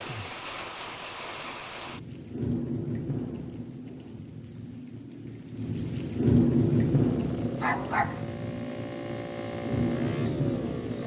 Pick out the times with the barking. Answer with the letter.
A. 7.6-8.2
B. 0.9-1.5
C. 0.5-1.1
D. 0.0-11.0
A.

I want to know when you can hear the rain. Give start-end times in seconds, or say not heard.
0.0-11.0.